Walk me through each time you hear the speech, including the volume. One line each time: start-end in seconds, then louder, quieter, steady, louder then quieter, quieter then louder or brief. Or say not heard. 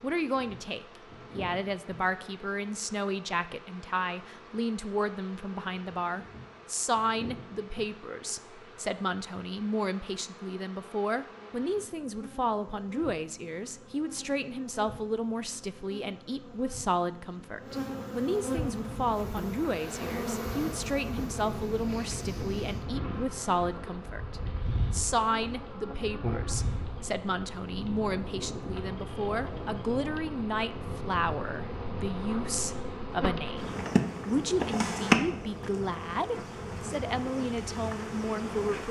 0.0-38.8 steady.